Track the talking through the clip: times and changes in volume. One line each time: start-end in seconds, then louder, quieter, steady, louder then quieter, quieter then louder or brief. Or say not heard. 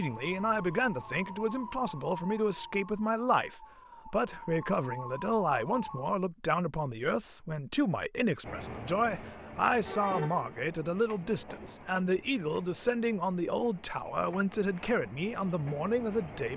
0.0-16.5 steady.